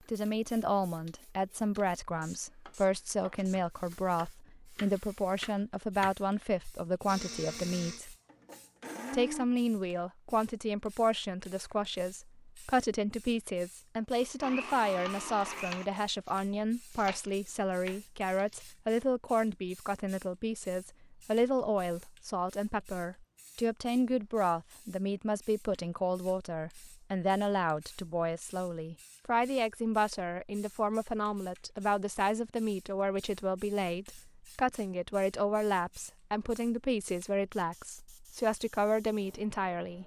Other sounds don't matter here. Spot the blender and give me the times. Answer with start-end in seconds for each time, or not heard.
7.0-9.4, 14.2-15.9.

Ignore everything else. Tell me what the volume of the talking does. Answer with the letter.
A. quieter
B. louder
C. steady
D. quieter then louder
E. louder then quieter
C.